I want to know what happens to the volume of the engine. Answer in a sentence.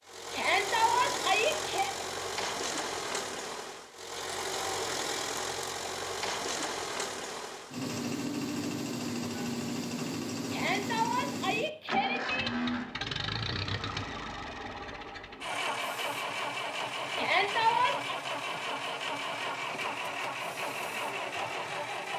The volume of the engine stays about the same.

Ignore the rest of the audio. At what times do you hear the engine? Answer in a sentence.
The engine can be heard from 0.1 to 22.1 s.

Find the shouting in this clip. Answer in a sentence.
You can hear the shouting from 0.3 to 1.9 s, from 10.5 to 12.5 s and from 17.1 to 18.1 s.